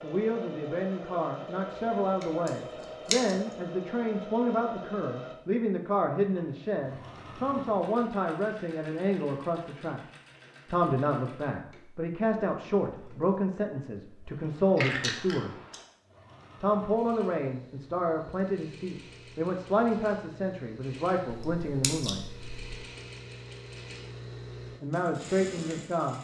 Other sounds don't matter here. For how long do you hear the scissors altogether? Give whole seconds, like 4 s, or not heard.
4 s.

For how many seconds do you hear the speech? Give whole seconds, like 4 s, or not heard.
22 s.